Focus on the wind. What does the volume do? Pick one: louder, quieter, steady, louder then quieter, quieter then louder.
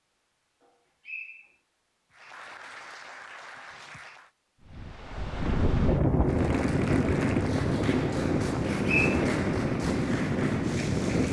steady.